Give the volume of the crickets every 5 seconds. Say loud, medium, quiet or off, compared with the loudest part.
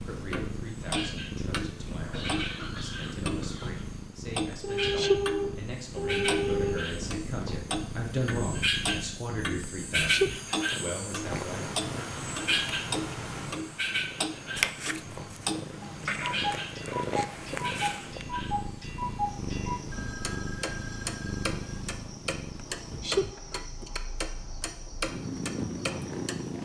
medium, loud, loud, medium, quiet, quiet.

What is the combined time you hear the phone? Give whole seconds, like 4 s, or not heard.
4 s.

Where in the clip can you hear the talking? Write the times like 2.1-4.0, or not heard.
0.0-11.8.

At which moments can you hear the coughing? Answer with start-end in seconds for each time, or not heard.
2.1-3.9.